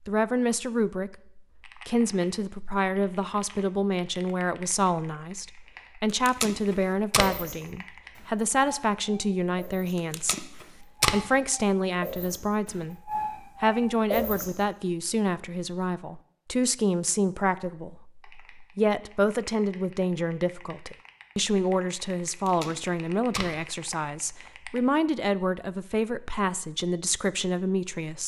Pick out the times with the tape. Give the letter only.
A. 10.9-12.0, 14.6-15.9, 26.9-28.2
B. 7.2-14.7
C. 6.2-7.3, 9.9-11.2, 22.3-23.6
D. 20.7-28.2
C.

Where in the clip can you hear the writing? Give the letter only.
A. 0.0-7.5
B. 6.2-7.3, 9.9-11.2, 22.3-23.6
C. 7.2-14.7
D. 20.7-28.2
C.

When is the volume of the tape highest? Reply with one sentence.
The volume of the tape peaks at 11 seconds.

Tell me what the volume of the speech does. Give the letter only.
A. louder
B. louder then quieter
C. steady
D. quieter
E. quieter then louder
C.